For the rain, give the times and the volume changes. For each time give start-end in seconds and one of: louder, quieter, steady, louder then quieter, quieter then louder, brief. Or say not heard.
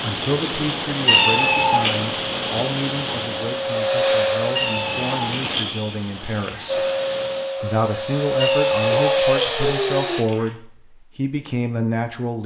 0.0-7.5 quieter.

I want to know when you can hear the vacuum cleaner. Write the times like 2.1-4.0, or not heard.
0.2-5.2, 6.7-10.2.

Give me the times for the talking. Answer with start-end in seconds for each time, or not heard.
0.0-6.8, 7.6-12.4.